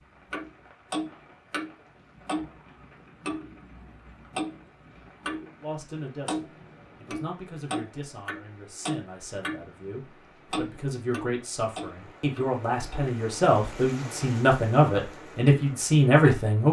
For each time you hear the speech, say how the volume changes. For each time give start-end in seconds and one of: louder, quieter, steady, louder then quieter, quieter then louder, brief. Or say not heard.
5.6-16.6 louder.